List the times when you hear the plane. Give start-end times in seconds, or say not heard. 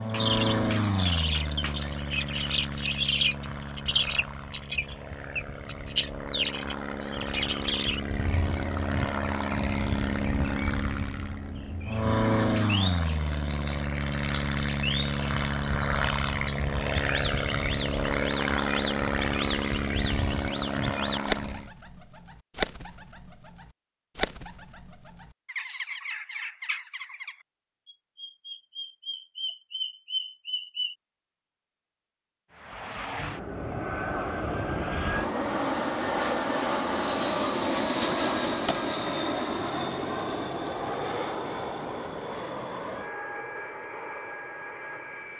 0.0-21.7, 32.5-45.3.